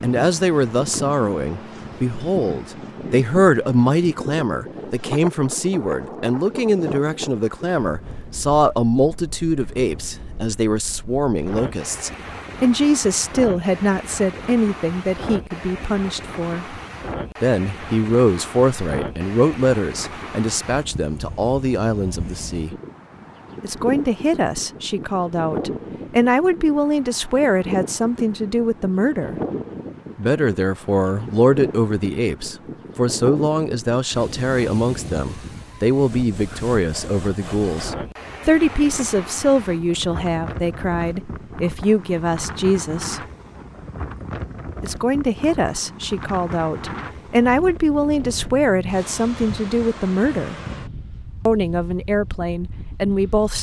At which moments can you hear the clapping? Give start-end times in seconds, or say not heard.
not heard.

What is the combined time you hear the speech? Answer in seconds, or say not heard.
49 s.